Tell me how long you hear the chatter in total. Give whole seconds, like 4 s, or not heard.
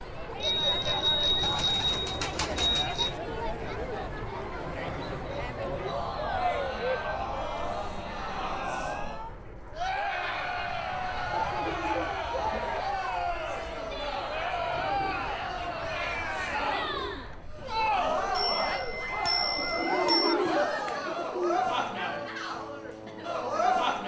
24 s.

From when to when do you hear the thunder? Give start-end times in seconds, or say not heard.
not heard.